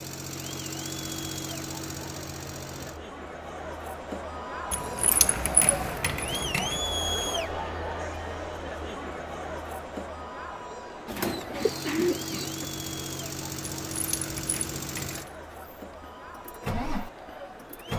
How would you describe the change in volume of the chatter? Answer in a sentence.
The loudness of the chatter goes up, then down.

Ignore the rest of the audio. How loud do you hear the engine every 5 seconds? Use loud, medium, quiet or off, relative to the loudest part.
loud, off, loud, loud.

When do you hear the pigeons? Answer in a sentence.
You can hear the pigeons from 11.1 to 12.7 s.